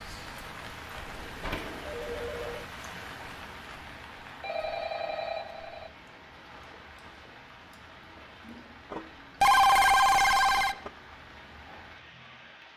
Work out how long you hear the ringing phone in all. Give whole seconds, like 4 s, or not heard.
5 s.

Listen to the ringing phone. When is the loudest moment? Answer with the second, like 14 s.
10 s.